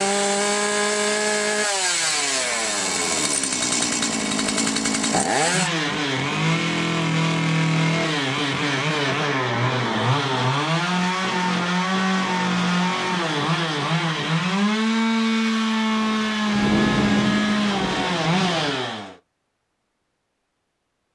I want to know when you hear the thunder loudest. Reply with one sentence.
The loudest moment of the thunder is at 17 seconds.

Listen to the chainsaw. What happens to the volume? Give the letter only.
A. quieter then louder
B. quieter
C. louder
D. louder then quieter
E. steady
E.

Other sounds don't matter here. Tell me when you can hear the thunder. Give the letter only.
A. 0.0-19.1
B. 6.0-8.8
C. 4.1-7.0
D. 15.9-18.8
D.